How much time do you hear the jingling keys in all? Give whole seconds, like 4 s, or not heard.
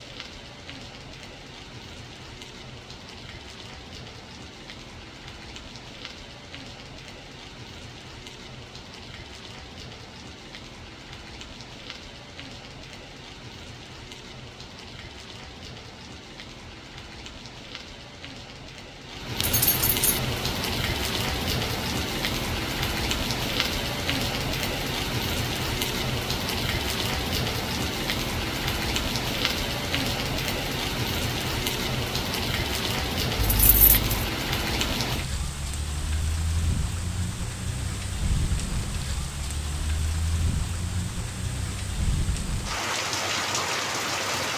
2 s.